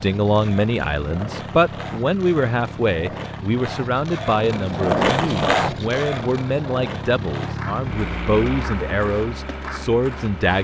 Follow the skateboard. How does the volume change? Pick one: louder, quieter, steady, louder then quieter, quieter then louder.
louder then quieter.